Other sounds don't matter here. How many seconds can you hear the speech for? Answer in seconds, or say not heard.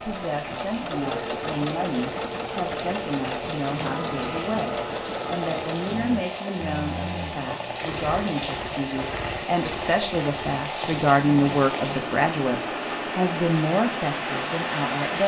15 s.